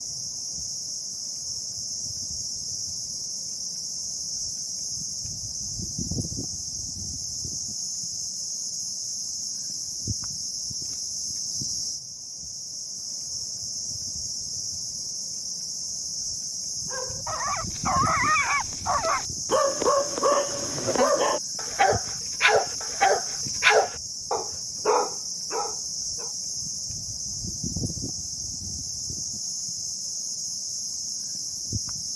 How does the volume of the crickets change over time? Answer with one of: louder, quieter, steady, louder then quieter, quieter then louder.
steady.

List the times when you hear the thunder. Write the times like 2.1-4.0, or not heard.
not heard.